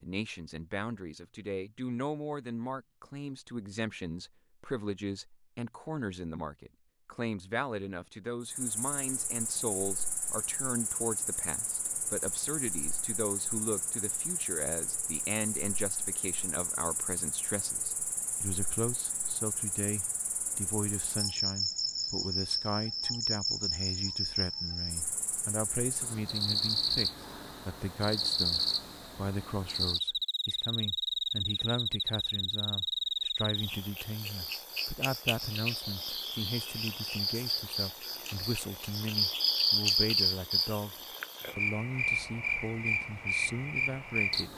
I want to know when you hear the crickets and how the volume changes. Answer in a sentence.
You can hear the crickets from 8.4 to 44.5 s, getting louder.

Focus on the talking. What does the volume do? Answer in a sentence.
The loudness of the talking stays about the same.